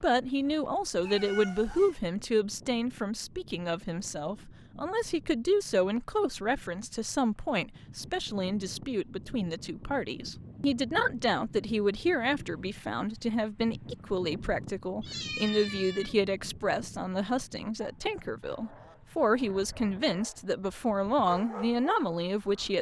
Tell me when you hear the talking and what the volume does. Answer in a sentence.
The talking can be heard from 0.0 to 22.7 s, at a steady volume.